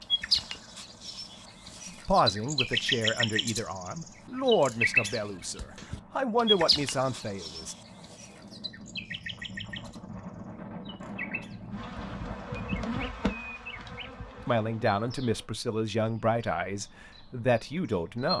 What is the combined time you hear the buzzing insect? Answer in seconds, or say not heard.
4 s.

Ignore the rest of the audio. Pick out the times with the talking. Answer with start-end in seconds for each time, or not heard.
2.0-7.8, 14.4-18.3.